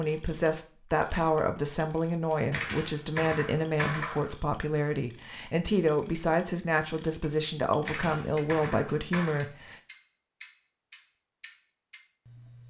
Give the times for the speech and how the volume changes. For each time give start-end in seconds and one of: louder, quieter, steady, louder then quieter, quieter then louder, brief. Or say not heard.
0.0-9.8 steady.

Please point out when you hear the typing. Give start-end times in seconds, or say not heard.
2.5-4.3, 7.8-9.4.